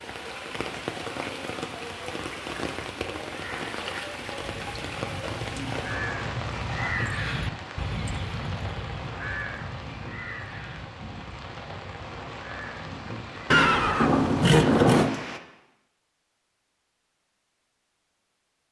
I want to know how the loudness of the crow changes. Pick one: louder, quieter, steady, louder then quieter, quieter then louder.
louder then quieter.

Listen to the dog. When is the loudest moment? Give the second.
7 s.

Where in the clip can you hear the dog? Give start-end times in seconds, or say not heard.
5.2-7.0.